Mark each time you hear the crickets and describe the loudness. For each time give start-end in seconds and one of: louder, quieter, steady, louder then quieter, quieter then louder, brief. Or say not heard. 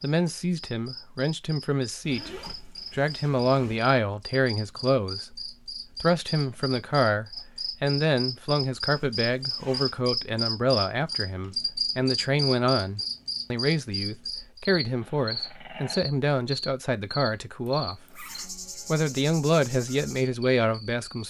0.0-21.2 louder then quieter.